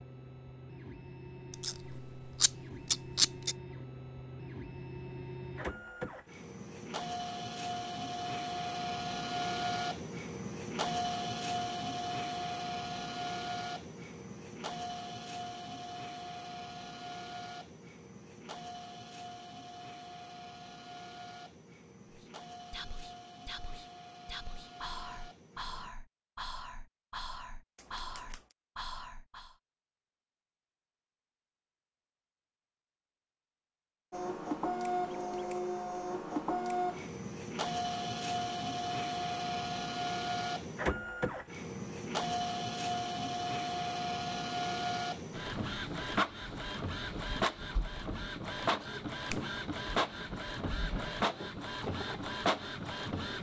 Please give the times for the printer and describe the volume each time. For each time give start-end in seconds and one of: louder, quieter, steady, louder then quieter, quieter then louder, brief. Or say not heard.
0.0-25.9 louder then quieter
34.1-53.3 steady.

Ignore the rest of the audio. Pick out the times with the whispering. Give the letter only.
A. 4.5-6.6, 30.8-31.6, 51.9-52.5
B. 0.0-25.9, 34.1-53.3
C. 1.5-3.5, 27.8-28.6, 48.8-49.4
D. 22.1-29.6
D.